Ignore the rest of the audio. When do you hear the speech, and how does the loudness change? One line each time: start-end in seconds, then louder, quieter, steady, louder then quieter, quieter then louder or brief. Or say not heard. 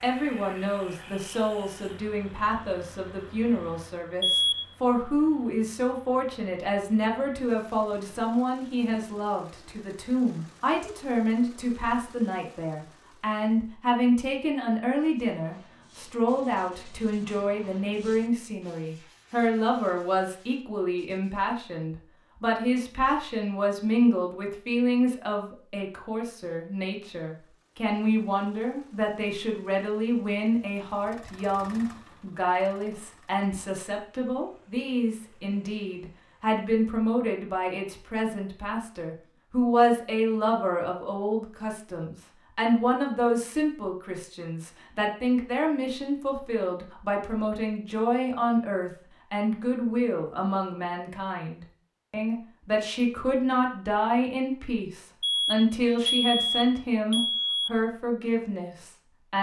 0.0-59.3 steady.